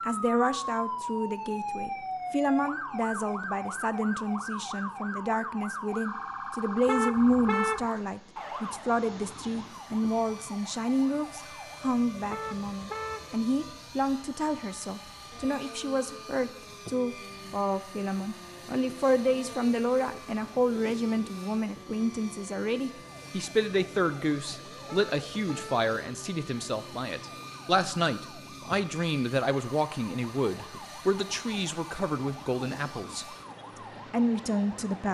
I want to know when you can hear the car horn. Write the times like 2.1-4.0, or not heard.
6.8-7.8, 12.2-13.3, 24.9-25.9.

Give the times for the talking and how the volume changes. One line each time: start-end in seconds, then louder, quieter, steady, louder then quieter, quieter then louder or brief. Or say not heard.
0.1-33.2 steady
34.1-35.1 brief.